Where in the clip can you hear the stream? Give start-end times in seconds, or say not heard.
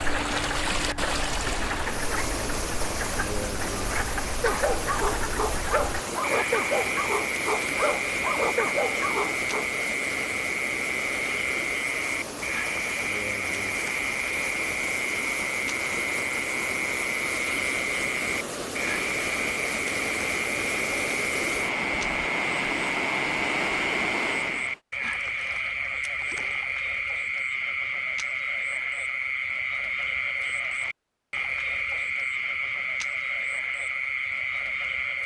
0.0-24.8.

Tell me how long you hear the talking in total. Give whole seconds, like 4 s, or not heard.
not heard.